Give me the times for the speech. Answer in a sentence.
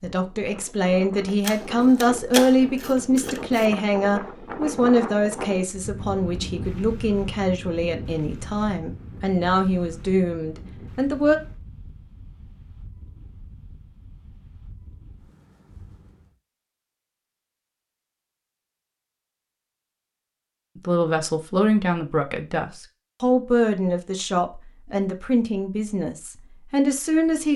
The speech can be heard from 0.0 to 11.4 s and from 20.8 to 27.5 s.